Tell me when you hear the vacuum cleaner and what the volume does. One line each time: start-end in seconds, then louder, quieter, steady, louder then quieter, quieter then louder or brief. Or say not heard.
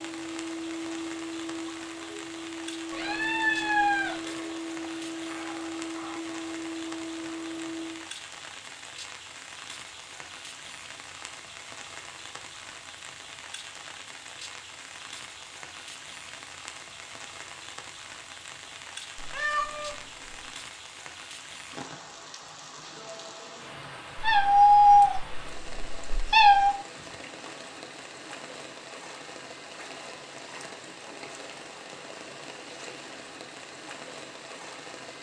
0.0-8.1 steady.